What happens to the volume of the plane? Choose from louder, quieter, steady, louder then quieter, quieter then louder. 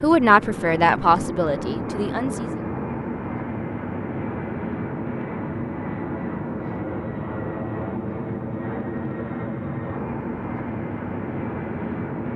steady.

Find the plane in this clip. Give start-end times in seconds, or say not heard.
0.0-12.3.